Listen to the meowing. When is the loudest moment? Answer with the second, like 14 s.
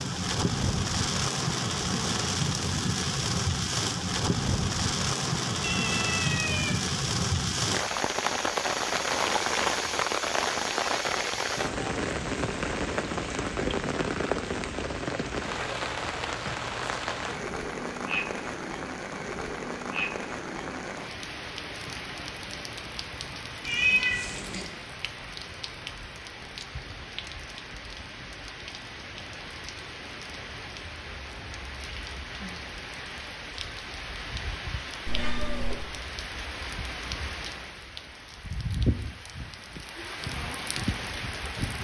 24 s.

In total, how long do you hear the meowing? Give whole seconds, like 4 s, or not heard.
3 s.